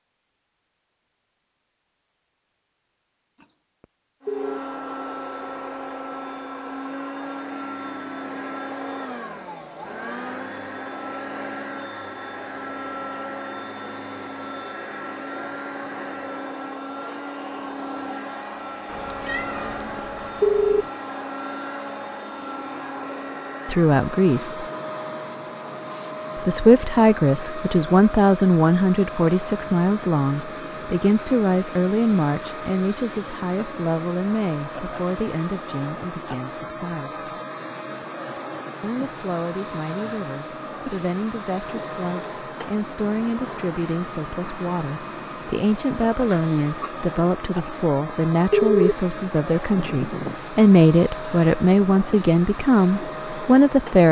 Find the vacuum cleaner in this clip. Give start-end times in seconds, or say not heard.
4.2-54.0.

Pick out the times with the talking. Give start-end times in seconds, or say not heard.
23.6-24.6, 26.4-37.2, 38.8-54.0.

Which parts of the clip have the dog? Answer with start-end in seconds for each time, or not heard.
not heard.